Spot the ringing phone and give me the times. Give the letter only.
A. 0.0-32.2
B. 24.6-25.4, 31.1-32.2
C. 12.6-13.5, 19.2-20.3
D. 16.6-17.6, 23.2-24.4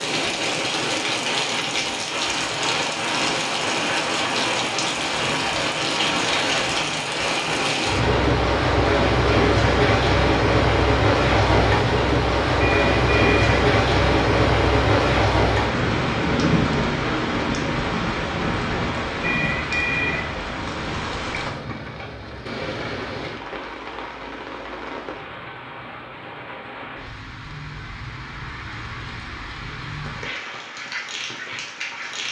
C.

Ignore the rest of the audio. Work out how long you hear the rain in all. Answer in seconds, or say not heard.
32 s.